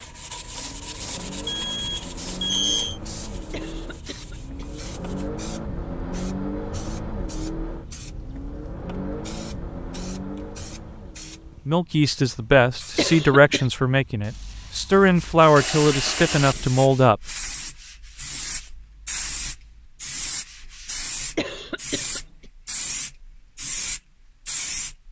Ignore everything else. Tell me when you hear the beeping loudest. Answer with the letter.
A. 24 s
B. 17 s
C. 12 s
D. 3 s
D.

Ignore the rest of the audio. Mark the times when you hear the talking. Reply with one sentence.
The talking can be heard from 11.7 to 17.3 s.